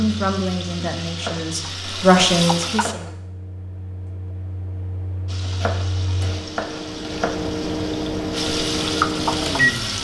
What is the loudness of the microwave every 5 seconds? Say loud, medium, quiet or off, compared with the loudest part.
quiet, loud.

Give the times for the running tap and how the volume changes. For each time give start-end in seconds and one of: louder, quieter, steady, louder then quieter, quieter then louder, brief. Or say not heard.
0.0-3.0 brief
5.2-10.0 louder.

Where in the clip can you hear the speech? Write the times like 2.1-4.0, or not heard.
0.0-3.1.